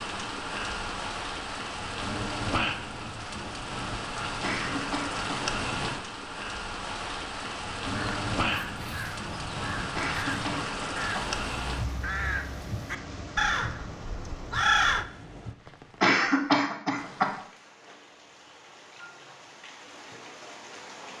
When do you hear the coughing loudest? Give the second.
16 s.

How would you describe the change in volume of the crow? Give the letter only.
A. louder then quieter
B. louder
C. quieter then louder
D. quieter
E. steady
B.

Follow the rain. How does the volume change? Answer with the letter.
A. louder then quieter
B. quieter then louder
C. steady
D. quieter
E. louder
D.